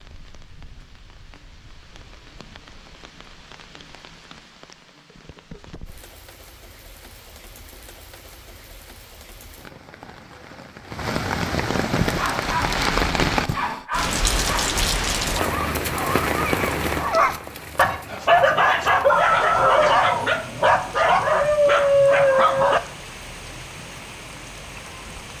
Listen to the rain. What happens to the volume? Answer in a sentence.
The volume of the rain goes up, then down.